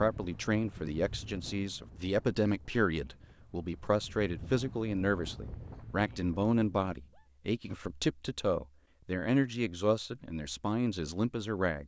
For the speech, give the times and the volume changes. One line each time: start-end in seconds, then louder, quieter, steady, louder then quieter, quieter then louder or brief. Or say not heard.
0.0-11.8 steady.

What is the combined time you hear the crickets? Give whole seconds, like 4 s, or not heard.
not heard.